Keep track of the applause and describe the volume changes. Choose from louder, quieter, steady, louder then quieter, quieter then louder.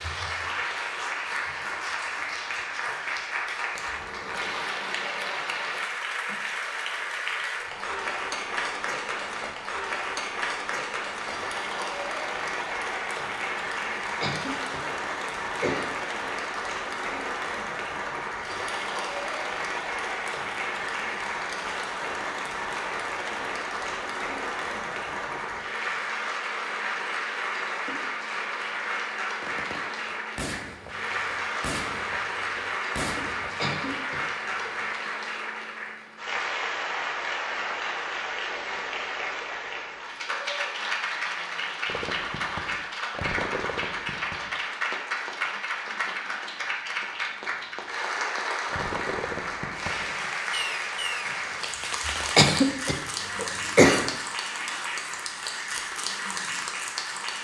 steady.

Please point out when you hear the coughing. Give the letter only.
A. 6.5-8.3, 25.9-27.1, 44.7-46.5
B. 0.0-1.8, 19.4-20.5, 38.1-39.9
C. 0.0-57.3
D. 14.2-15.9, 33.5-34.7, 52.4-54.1
D.